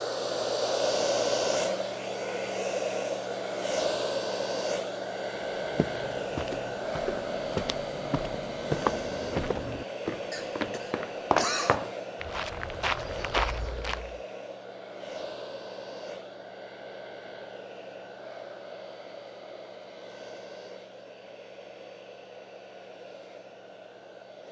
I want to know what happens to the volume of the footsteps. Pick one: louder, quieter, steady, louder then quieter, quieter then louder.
louder.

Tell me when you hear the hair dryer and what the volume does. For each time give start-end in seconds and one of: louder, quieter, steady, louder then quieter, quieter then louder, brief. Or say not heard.
0.0-24.4 quieter.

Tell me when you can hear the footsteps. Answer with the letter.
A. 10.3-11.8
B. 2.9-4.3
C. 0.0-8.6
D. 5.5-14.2
D.